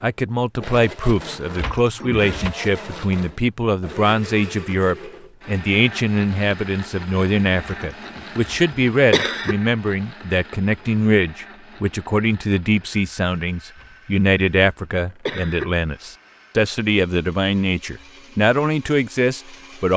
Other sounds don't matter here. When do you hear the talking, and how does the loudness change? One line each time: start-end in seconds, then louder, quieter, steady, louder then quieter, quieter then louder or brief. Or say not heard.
0.0-19.9 steady.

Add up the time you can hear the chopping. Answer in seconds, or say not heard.
not heard.